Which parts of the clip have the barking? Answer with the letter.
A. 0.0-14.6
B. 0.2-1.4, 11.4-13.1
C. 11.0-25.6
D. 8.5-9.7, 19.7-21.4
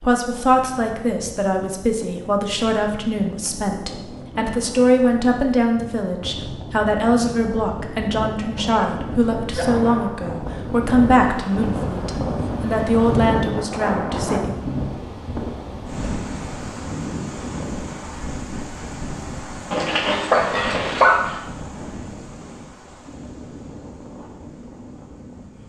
D.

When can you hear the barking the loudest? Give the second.
21 s.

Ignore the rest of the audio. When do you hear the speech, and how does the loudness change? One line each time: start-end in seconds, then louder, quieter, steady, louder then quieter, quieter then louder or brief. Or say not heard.
0.0-14.6 steady.